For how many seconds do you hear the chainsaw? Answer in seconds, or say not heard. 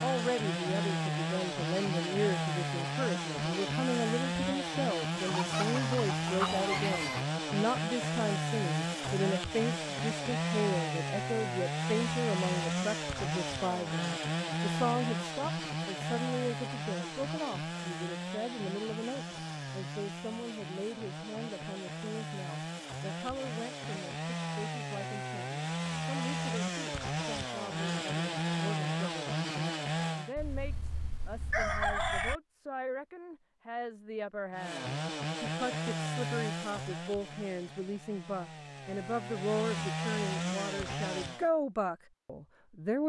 37 s.